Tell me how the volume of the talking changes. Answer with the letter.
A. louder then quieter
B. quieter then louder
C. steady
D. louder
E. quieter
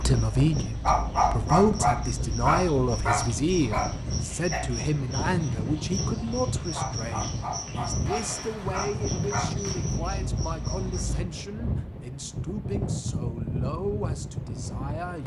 E.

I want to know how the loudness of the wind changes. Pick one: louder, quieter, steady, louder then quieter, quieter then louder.
steady.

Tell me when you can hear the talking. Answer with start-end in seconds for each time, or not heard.
0.0-15.2.